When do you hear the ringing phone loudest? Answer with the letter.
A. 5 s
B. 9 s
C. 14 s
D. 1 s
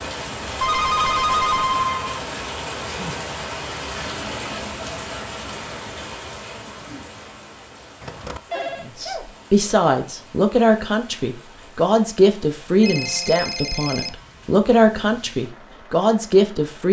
D.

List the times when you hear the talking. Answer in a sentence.
You can hear the talking from 8.8 to 16.8 s.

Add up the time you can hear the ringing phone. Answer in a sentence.
You can hear the ringing phone for 4 seconds altogether.